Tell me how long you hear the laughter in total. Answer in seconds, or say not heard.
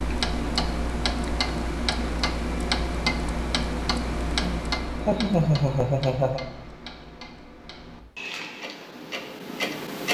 2 s.